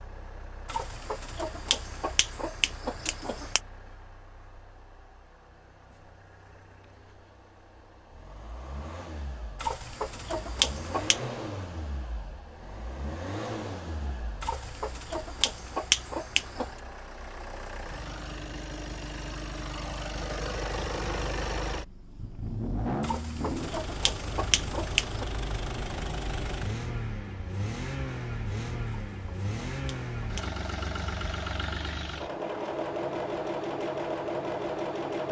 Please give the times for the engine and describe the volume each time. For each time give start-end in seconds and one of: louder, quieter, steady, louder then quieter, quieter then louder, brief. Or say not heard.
0.0-35.2 louder.